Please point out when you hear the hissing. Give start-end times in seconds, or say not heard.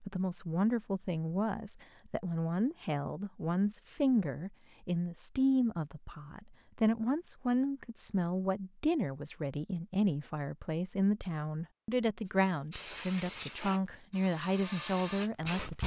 12.2-15.8.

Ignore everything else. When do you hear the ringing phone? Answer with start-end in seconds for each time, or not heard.
not heard.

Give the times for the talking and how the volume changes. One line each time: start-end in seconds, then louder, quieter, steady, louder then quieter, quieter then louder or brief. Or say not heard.
0.0-15.8 steady.